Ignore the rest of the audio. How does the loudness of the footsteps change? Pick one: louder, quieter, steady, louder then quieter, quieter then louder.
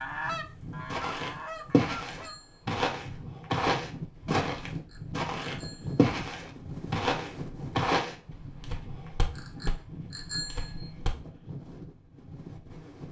quieter.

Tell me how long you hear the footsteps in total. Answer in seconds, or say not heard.
10 s.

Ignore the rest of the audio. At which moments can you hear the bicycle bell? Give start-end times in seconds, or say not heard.
1.5-2.6, 4.7-6.1, 9.3-10.9.